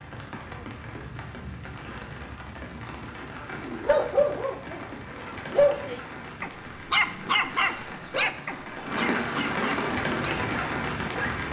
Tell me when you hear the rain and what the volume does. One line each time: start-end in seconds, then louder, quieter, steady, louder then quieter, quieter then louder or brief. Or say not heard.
0.0-11.4 louder.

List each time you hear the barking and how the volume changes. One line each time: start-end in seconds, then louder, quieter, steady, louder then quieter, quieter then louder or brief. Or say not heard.
3.4-11.3 quieter.